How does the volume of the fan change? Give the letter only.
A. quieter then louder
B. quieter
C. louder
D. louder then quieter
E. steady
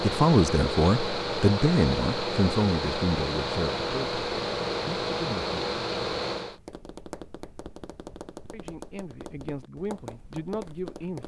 E.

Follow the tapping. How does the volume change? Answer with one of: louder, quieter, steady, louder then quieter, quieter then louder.
steady.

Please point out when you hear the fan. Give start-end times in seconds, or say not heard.
0.0-6.6.